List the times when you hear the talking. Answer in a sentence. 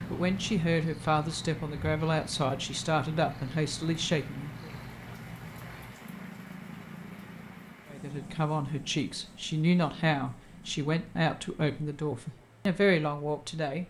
The talking can be heard from 0.1 to 4.7 s and from 7.9 to 13.8 s.